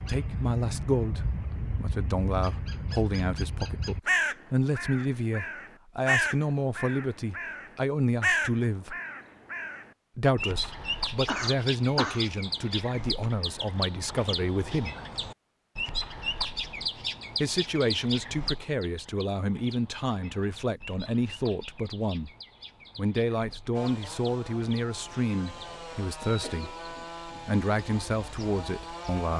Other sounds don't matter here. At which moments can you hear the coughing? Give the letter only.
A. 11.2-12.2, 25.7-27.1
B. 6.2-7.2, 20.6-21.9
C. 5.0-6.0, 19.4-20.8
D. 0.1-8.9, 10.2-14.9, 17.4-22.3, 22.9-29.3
A.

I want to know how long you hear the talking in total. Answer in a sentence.
The talking can be heard for 25 seconds in total.